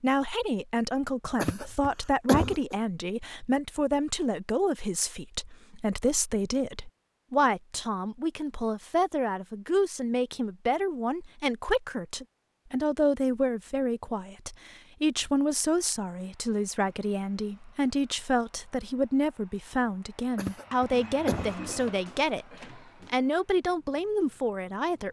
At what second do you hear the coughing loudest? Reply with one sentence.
The volume of the coughing peaks at 2 seconds.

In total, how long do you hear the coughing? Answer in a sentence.
You can hear the coughing for 3 seconds altogether.